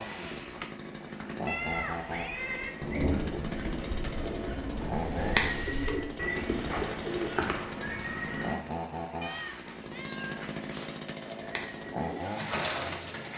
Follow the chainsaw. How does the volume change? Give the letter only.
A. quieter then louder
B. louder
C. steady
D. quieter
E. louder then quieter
C.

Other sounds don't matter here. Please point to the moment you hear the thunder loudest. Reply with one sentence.
The volume of the thunder peaks at 3 seconds.